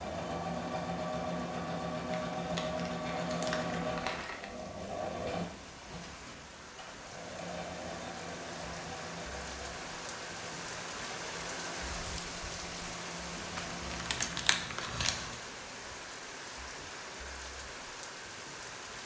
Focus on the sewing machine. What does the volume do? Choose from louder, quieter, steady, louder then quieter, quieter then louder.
quieter.